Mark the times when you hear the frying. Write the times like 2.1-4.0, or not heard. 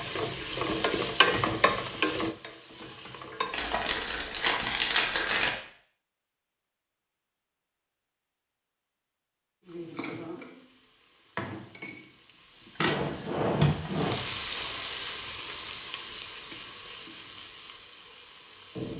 0.0-3.7, 9.7-18.9.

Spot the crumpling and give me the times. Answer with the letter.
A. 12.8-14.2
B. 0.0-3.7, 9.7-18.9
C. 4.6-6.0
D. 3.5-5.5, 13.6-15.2
D.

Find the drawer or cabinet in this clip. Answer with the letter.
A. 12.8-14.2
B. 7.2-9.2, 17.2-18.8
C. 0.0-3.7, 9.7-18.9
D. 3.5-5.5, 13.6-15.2
A.